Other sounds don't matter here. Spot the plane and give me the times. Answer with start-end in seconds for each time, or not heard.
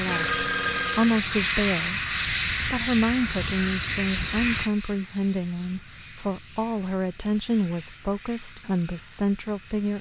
0.0-9.9.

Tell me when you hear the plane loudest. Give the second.
2 s.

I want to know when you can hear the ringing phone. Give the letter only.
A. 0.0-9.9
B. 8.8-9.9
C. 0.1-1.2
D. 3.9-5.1
C.